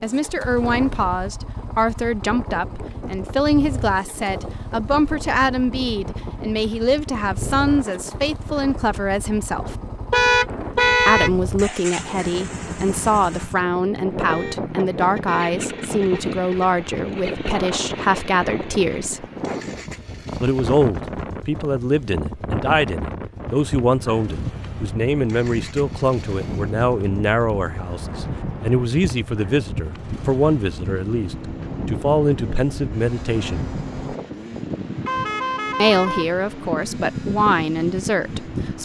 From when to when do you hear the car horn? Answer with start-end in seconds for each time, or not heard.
10.1-11.3, 14.2-16.7, 35.0-36.3.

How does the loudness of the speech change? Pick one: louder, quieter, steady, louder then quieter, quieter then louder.
steady.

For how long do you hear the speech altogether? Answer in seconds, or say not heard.
34 s.